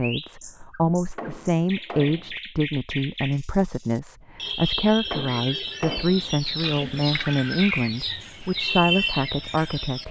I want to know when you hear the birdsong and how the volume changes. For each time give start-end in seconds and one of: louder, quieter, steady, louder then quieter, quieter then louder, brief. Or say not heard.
0.0-10.0 louder.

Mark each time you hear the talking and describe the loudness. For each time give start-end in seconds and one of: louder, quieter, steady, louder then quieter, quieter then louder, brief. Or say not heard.
0.0-10.0 steady.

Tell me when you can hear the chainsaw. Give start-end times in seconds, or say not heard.
not heard.